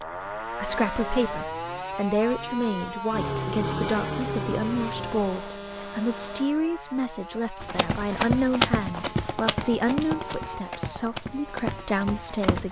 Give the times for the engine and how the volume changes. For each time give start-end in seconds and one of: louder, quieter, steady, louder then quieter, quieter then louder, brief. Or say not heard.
0.0-5.3 louder.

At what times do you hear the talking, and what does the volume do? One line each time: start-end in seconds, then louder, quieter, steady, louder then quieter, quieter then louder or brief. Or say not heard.
0.0-12.6 steady.